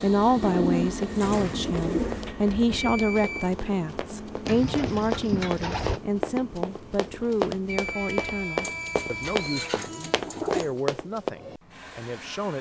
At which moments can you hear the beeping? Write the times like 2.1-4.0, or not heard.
2.8-3.5, 7.7-9.7.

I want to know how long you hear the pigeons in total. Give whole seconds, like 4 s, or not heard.
6 s.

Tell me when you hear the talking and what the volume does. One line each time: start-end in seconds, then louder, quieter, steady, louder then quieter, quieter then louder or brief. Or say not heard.
0.0-12.5 quieter.